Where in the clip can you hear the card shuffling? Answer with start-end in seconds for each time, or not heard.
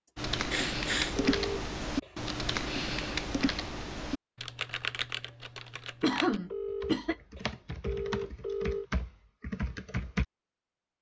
not heard.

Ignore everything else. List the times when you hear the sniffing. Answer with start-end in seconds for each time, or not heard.
0.5-1.1, 6.0-7.2.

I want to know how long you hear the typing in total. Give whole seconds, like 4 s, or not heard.
10 s.